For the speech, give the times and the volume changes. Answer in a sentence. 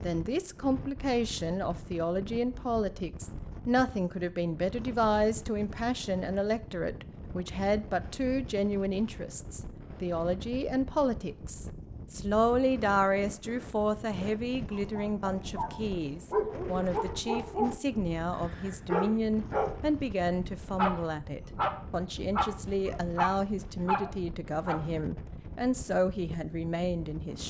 You can hear the speech from 0.0 to 27.4 s, at a steady volume.